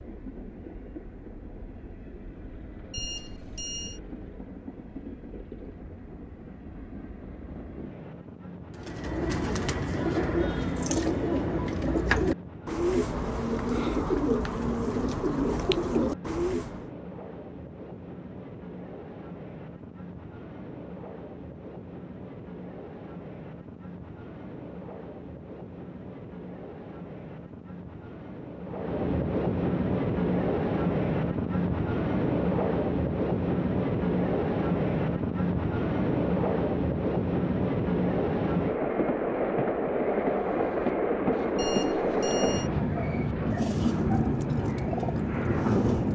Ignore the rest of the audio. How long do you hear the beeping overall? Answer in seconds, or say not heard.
2 s.